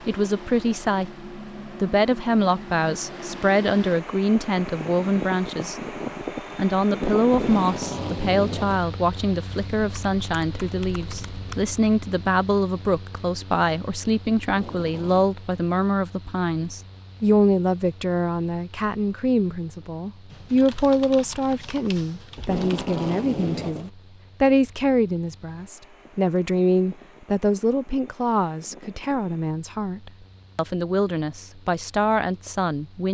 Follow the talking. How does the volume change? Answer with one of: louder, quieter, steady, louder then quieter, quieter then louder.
steady.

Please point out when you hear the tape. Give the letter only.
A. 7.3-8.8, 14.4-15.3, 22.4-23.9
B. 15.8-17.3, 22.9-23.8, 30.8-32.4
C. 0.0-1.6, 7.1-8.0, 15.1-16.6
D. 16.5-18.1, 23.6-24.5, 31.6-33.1
A.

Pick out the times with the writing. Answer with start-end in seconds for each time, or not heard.
not heard.